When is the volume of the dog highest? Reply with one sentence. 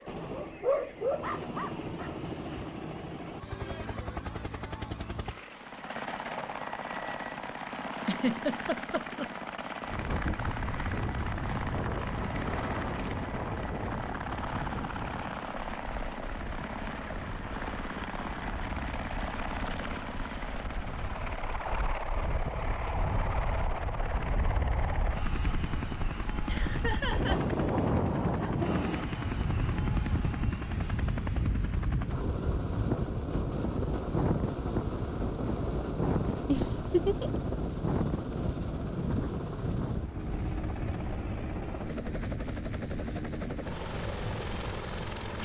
The volume of the dog peaks at 1 second.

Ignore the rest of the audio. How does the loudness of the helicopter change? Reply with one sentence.
The loudness of the helicopter stays about the same.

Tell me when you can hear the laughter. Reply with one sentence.
The laughter can be heard from 8.0 to 9.3 s, from 26.4 to 27.4 s and from 36.5 to 37.4 s.